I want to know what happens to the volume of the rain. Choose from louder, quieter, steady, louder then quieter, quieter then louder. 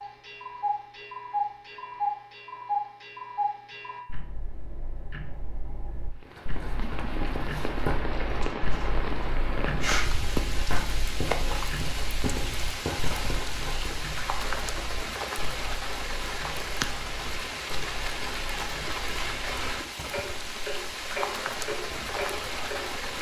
steady.